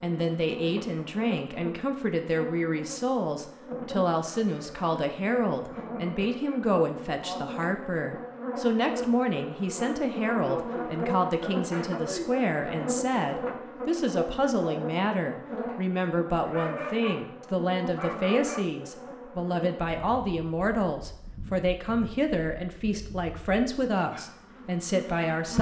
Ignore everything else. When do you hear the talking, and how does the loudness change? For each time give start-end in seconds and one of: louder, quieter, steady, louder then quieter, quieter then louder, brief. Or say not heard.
0.0-25.5 steady.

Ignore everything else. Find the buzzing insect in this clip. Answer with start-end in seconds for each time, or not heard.
0.0-25.5.